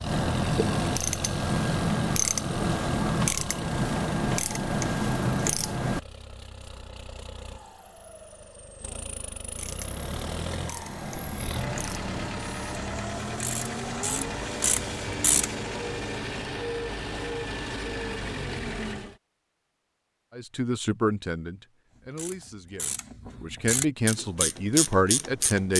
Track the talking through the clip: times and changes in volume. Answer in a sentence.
You can hear the talking from 20.4 to 25.7 s, getting quieter then louder.